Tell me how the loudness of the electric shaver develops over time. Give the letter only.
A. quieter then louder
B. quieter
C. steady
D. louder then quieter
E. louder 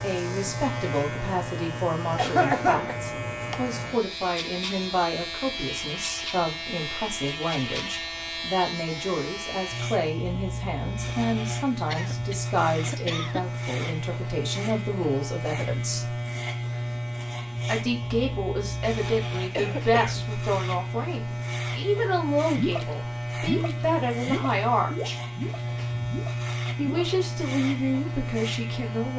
C.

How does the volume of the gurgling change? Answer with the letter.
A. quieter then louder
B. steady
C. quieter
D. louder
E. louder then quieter
C.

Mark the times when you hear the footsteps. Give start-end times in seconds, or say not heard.
not heard.